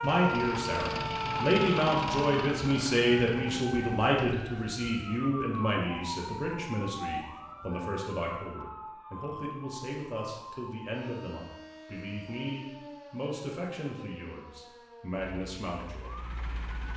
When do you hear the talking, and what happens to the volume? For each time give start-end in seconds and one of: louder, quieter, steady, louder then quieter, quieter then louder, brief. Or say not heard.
0.0-16.1 quieter.